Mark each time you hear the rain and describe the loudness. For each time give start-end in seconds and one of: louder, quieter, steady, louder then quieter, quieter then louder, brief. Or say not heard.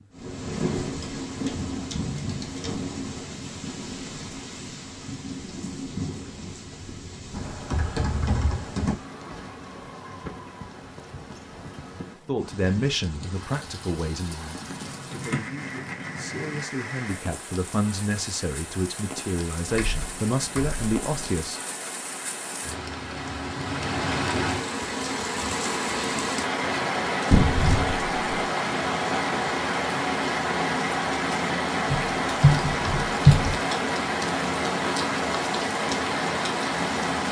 0.0-37.2 quieter then louder.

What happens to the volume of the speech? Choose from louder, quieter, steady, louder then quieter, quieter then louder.
quieter then louder.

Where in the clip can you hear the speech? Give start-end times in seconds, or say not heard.
12.2-21.6.